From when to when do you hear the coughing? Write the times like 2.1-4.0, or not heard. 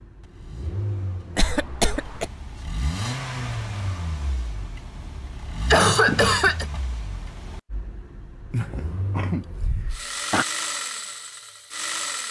1.4-2.3, 5.7-6.7, 8.5-10.4.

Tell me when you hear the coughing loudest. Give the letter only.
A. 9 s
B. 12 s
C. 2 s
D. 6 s
D.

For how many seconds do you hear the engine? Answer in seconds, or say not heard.
12 s.